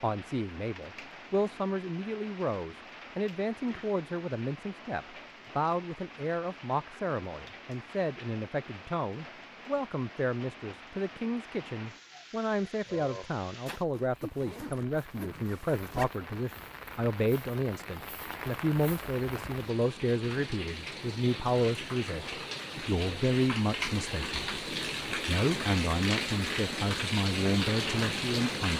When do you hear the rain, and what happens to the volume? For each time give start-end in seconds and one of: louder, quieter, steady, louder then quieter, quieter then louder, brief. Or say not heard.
0.0-28.7 louder.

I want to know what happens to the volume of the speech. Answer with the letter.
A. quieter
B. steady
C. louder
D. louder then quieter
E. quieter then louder
B.